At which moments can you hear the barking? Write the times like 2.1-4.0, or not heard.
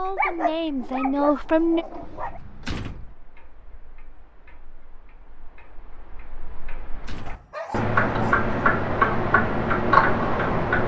0.1-2.4, 7.2-8.6.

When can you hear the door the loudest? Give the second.
3 s.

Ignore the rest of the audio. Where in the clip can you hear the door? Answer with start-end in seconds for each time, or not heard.
2.0-3.1, 6.5-7.5.